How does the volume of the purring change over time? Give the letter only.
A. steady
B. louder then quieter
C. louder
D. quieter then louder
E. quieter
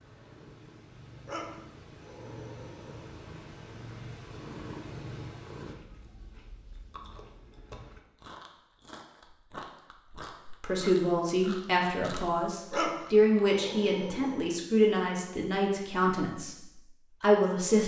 C.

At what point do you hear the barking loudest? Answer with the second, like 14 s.
13 s.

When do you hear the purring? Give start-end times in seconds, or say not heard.
0.0-5.8.